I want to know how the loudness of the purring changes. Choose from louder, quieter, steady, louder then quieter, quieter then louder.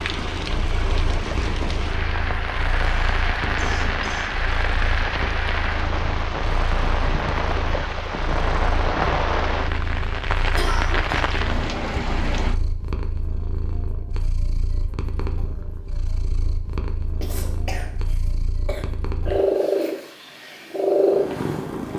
louder.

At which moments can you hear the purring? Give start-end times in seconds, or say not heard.
0.0-21.9.